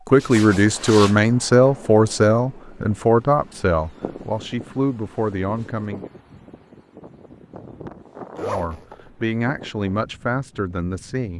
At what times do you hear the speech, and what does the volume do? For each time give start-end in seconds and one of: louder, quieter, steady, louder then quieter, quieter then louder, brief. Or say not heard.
0.1-6.1 quieter
8.4-11.3 brief.